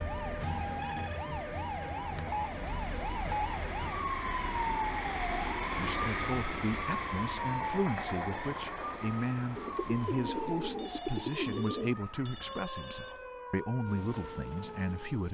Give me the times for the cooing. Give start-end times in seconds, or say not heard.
9.6-11.9.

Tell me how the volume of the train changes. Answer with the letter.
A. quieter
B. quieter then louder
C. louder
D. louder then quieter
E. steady
D.